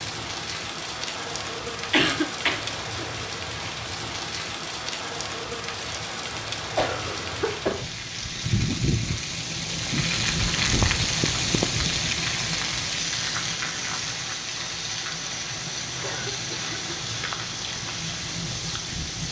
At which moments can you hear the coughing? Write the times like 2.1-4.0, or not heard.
1.9-3.0, 6.8-7.9, 16.0-16.9.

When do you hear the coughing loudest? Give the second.
2 s.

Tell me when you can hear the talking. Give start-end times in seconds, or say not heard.
not heard.